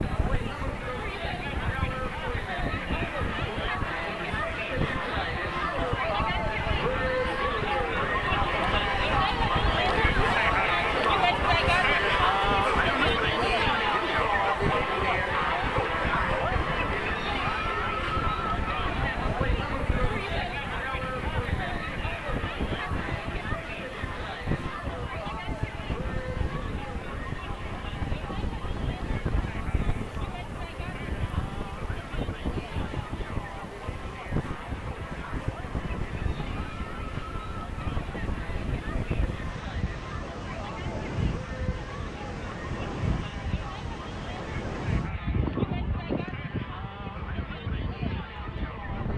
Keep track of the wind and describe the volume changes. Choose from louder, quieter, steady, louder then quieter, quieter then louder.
steady.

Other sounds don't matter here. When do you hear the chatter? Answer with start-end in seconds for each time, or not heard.
0.0-49.1.